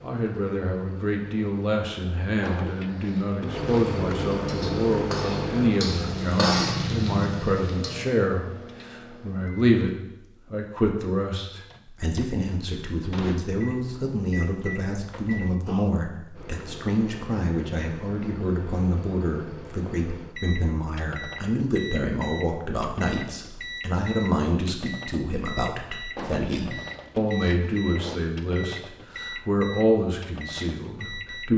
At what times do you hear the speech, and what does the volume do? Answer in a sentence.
The speech can be heard from 0.0 to 31.5 s, at a steady volume.